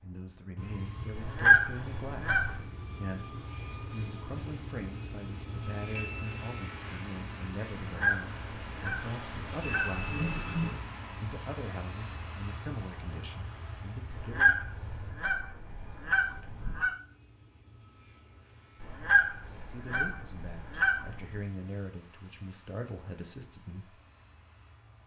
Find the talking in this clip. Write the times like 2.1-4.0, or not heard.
0.0-14.6, 19.5-24.0.